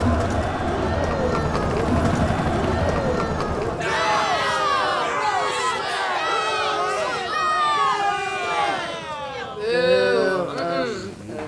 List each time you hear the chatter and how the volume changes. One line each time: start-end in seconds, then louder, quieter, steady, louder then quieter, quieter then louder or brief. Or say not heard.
0.0-11.4 steady.